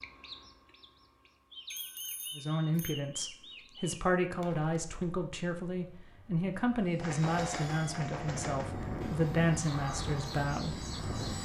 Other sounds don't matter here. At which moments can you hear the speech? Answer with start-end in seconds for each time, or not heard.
2.4-10.8.